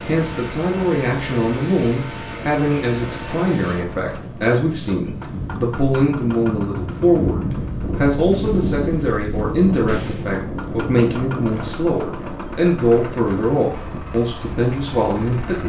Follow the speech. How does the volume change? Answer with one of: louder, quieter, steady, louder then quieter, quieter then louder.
steady.